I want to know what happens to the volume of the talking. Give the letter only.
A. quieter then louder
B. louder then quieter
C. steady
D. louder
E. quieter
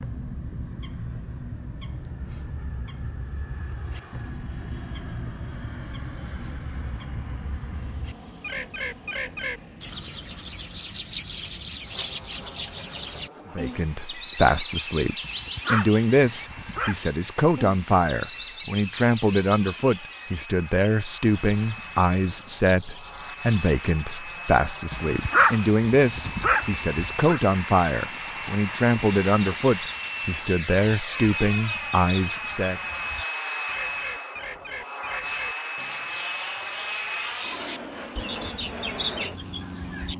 C.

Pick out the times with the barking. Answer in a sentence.
You can hear the barking from 15.2 to 17.0 s and from 24.9 to 27.4 s.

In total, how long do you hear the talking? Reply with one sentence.
The talking can be heard for 19 seconds in total.